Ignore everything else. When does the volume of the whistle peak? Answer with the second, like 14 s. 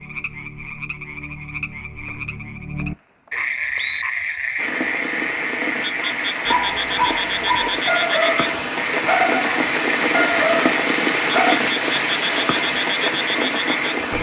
4 s.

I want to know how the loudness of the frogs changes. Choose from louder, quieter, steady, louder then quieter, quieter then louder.
louder.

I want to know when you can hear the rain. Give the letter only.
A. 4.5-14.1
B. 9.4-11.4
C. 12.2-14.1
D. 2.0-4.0
A.